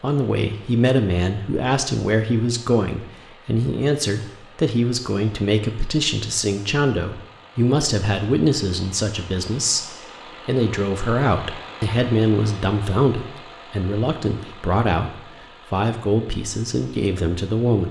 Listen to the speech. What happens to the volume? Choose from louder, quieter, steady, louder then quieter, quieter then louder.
steady.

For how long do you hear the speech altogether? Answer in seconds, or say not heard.
18 s.